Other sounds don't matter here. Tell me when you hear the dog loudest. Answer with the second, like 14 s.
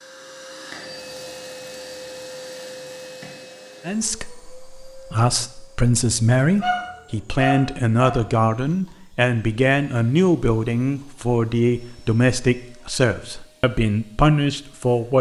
7 s.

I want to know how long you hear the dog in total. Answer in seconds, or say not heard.
2 s.